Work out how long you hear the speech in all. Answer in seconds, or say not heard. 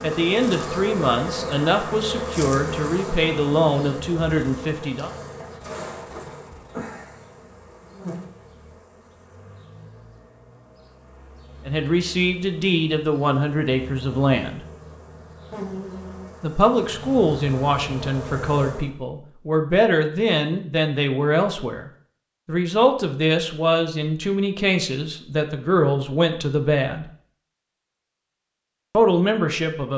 20 s.